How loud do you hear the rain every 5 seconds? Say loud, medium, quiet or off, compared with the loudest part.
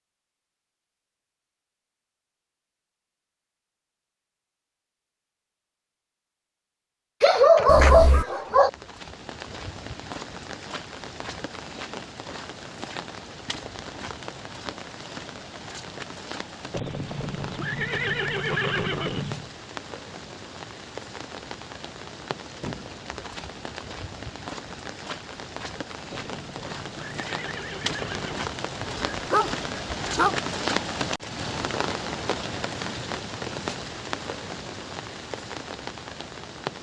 off, medium, medium, medium, medium, loud, loud, medium.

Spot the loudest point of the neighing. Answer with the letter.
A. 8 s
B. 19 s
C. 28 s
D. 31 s
B.